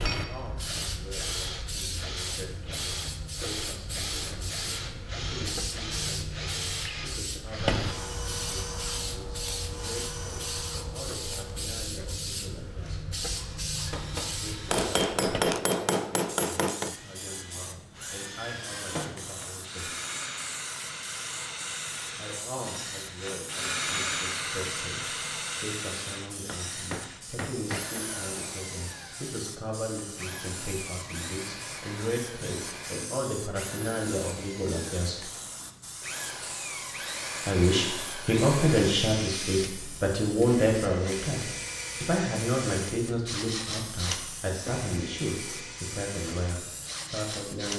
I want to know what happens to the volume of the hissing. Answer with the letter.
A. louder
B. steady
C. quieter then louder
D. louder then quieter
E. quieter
E.